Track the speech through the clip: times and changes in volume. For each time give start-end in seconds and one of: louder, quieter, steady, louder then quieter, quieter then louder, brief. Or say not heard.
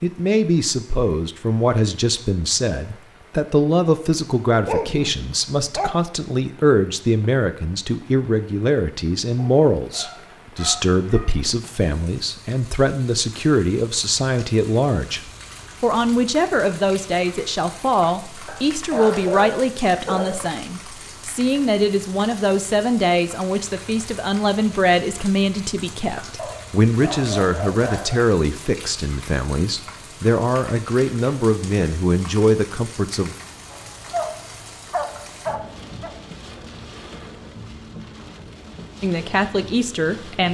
0.0-33.4 steady
39.0-40.4 brief.